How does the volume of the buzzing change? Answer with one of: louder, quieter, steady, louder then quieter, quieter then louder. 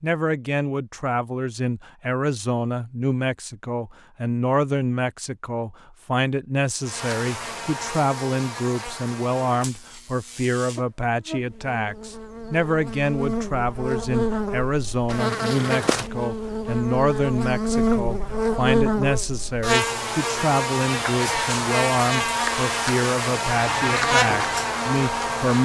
louder.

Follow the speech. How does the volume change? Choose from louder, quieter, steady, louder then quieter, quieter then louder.
steady.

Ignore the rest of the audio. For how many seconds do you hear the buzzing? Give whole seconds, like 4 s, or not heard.
19 s.